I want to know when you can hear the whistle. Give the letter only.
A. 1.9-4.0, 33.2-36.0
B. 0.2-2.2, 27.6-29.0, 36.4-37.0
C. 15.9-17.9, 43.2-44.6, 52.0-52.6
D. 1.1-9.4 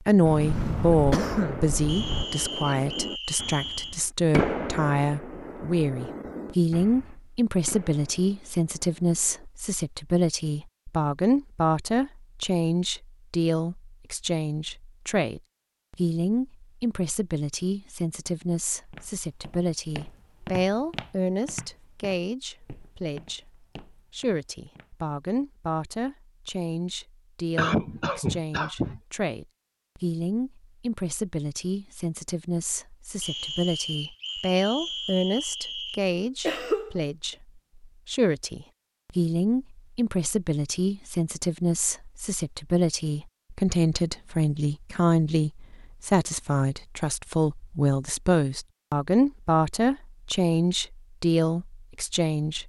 A.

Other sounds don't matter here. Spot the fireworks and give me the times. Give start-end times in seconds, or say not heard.
1.1-9.4.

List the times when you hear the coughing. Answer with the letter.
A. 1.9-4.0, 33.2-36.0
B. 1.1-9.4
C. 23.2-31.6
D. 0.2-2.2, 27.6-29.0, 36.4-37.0
D.